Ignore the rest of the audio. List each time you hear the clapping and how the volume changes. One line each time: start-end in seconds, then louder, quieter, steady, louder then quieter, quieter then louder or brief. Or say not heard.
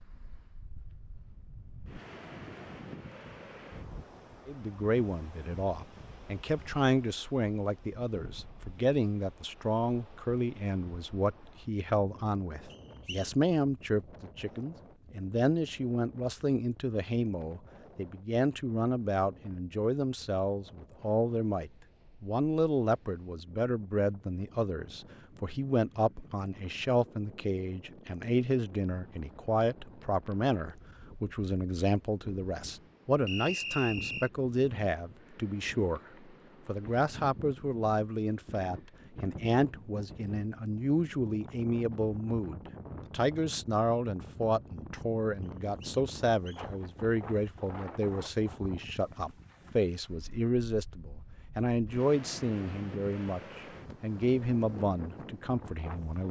not heard.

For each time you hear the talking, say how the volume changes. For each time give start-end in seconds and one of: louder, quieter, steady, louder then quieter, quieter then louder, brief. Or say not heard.
4.5-36.0 steady
36.6-56.2 steady.